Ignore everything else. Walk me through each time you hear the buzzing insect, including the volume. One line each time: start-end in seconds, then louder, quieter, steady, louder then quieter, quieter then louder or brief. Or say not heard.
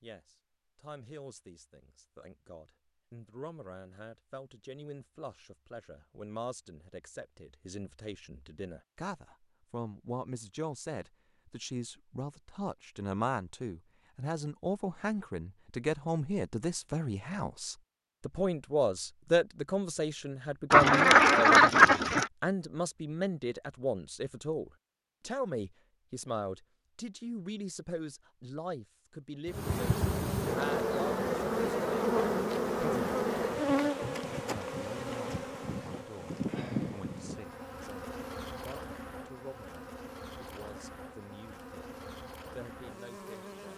29.4-43.7 quieter.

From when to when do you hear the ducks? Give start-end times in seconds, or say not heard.
20.7-22.3.